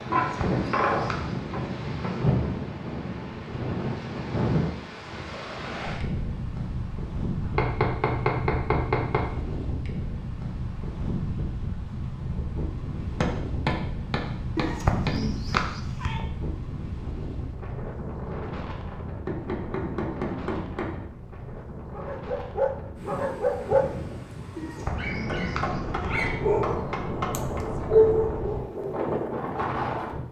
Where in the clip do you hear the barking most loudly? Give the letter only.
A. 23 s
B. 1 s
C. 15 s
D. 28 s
D.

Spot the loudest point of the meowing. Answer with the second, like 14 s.
15 s.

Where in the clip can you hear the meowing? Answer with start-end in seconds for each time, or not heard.
0.1-1.3, 14.6-16.2, 24.6-26.4.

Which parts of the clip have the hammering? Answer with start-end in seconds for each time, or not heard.
0.1-2.2, 7.4-9.2, 13.2-15.7, 19.2-20.9, 24.9-27.6.